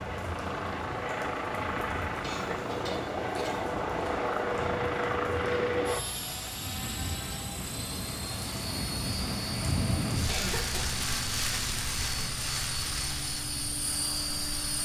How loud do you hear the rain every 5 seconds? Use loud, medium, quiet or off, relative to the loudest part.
medium, loud, loud.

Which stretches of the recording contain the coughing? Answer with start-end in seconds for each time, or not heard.
2.2-3.8, 10.2-10.9.